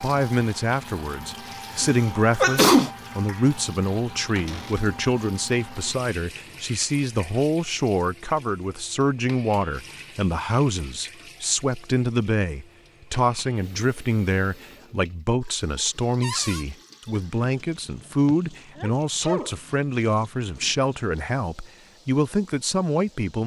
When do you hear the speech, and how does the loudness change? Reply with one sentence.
The speech can be heard from 0.0 to 23.4 s, at a steady volume.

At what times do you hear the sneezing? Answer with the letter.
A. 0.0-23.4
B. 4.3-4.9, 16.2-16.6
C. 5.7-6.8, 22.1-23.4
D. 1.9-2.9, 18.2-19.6
D.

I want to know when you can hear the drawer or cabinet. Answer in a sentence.
The drawer or cabinet can be heard from 4.3 to 4.9 s and from 16.2 to 16.6 s.